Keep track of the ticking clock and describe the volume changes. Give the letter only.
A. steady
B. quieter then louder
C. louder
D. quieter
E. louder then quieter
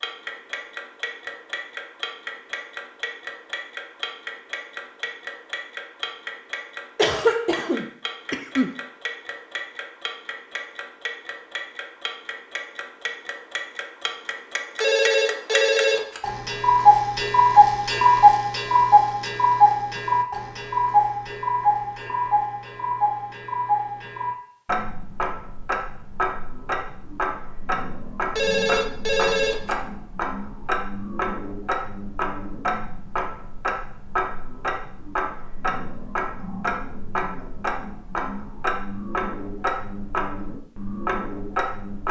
E.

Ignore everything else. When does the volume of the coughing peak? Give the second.
7 s.